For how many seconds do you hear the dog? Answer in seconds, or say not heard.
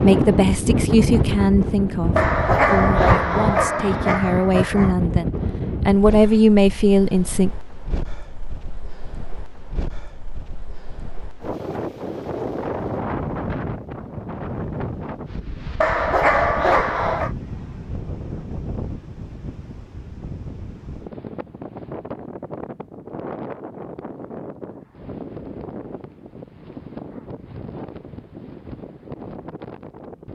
4 s.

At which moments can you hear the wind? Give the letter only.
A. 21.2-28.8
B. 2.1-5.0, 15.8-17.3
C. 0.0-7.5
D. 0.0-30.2
D.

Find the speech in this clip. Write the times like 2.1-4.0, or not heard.
0.0-7.5.